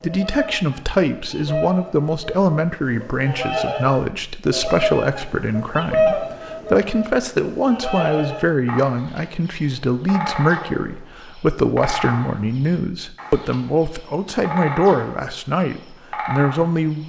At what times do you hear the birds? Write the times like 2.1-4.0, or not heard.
0.0-17.0.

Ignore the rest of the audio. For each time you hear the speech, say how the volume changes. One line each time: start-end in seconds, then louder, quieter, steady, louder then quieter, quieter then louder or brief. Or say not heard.
0.0-17.0 steady.